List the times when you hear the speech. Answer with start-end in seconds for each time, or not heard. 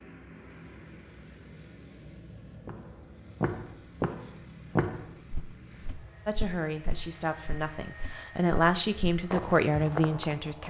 6.2-10.6.